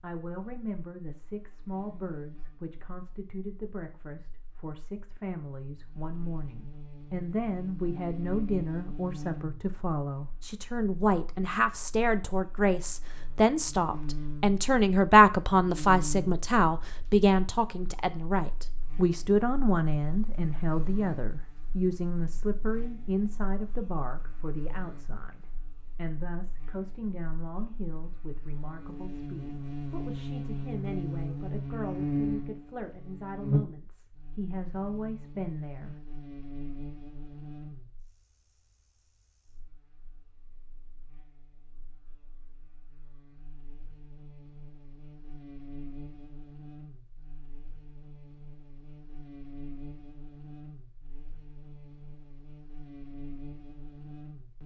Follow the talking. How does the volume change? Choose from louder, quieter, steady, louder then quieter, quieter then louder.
louder then quieter.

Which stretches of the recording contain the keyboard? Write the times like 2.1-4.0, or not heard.
not heard.